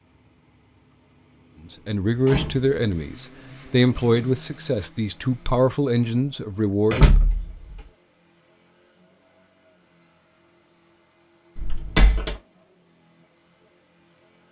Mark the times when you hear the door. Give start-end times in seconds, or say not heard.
2.1-2.8, 6.9-7.8, 11.6-12.3.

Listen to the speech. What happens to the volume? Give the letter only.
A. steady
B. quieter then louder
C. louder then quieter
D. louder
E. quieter
A.